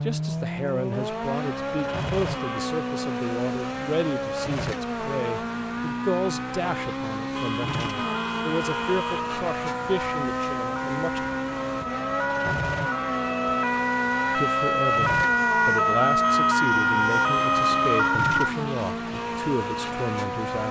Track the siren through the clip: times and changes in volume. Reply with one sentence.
The siren can be heard from 7.9 to 18.6 s, getting louder.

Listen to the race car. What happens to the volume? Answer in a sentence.
The loudness of the race car stays about the same.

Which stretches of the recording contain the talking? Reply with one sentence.
The talking can be heard from 0.1 to 11.2 s and from 14.3 to 20.6 s.